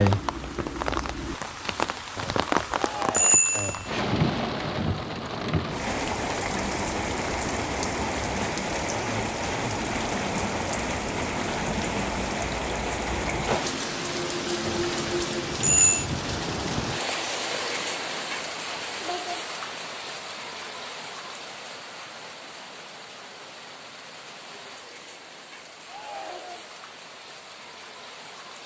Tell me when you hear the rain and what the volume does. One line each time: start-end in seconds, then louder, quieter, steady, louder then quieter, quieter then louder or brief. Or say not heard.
0.0-28.6 quieter.